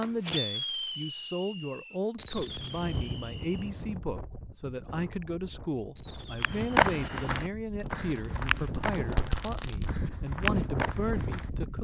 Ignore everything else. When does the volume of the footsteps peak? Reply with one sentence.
The volume of the footsteps peaks at 7 seconds.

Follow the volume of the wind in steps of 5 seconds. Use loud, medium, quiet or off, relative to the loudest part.
medium, medium, loud.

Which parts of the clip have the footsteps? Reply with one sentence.
The footsteps can be heard from 6.4 to 11.5 s.